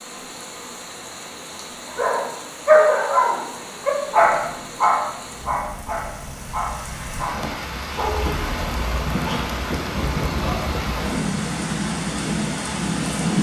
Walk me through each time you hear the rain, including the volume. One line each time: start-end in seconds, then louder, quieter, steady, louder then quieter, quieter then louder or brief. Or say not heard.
0.0-13.3 louder.